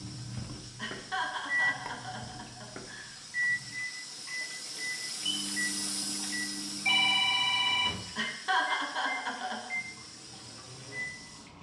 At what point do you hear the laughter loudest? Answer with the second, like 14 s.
9 s.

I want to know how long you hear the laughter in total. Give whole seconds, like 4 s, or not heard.
4 s.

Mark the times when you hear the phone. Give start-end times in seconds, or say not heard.
6.8-8.0.